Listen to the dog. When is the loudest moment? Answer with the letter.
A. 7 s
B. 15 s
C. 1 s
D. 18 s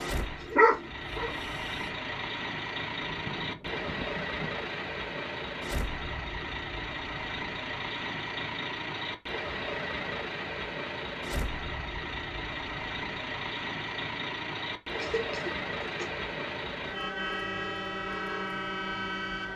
C.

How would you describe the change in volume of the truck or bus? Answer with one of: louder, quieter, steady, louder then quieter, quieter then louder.
steady.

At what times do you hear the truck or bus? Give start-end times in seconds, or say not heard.
0.0-19.5.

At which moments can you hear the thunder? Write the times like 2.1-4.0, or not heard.
3.0-4.5.